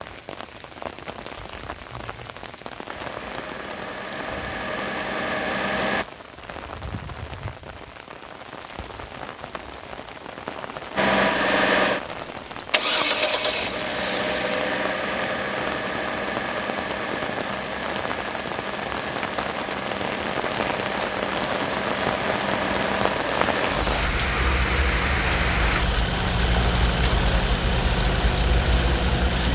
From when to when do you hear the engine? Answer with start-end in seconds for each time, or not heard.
2.9-6.0, 10.9-29.5.